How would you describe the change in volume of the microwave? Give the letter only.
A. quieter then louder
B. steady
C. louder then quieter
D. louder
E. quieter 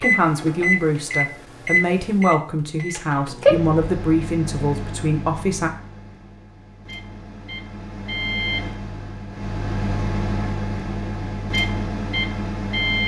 A.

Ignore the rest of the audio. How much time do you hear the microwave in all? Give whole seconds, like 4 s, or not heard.
13 s.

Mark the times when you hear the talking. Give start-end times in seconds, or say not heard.
0.0-5.7.